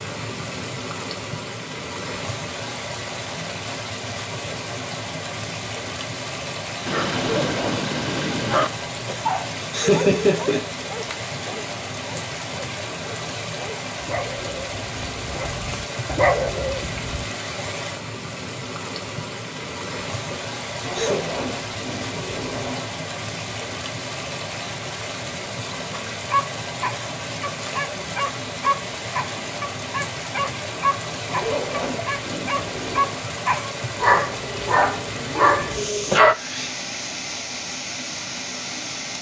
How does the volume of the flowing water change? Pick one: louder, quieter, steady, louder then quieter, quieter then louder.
steady.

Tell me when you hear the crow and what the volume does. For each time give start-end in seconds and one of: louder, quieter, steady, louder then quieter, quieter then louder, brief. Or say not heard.
not heard.